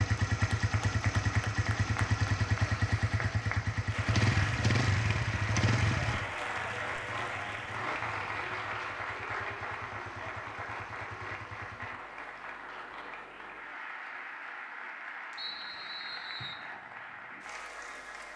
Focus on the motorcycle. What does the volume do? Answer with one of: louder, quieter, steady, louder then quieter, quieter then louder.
quieter.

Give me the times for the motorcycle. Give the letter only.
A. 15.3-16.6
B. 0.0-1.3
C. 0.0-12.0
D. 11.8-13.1
C.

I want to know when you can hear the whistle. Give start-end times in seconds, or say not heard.
15.3-16.6.